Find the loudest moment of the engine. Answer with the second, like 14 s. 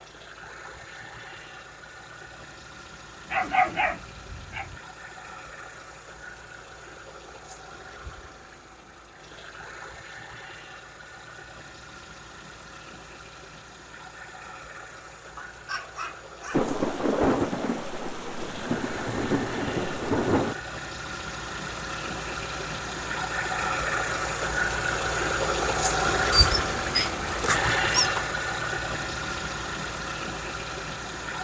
26 s.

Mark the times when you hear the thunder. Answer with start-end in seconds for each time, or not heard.
16.5-20.6.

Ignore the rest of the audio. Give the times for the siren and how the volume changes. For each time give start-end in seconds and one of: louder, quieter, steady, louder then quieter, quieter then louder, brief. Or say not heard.
not heard.